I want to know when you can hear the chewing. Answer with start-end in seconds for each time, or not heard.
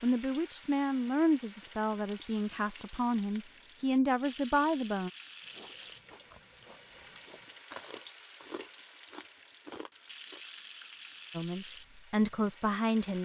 5.5-10.4.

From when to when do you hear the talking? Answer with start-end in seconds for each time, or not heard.
0.0-5.1, 11.3-13.1.